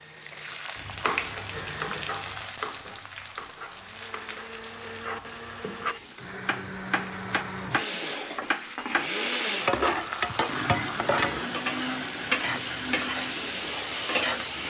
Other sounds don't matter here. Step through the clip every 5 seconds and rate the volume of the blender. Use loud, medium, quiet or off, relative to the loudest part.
medium, loud, loud.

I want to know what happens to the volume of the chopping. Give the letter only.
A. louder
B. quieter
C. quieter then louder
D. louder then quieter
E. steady
C.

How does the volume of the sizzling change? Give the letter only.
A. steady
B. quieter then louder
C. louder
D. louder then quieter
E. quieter
B.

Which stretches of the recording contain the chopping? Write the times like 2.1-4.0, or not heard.
0.8-9.2.